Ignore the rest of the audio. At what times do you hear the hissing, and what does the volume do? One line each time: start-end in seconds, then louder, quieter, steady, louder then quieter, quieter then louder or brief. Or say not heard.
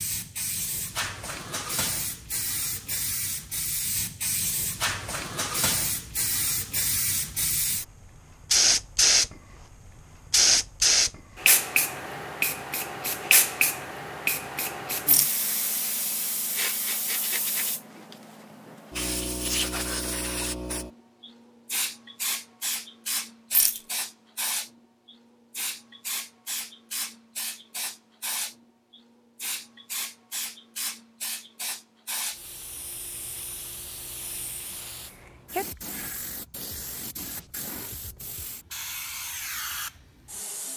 0.0-40.7 louder then quieter.